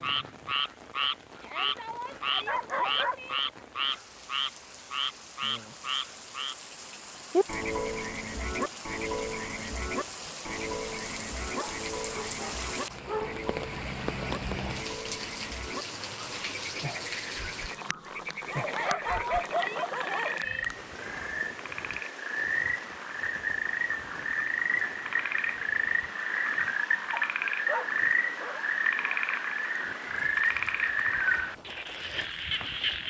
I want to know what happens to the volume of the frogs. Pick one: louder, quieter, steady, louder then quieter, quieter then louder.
quieter then louder.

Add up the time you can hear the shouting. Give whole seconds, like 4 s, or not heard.
4 s.